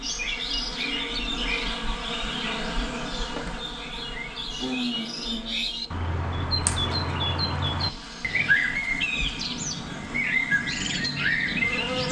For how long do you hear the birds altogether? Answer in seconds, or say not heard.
12 s.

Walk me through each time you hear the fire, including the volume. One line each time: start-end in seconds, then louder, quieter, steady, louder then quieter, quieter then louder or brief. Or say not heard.
not heard.